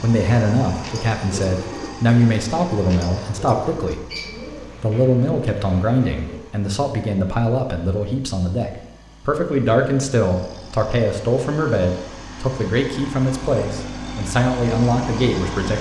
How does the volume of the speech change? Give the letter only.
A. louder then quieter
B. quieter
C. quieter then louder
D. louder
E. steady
E.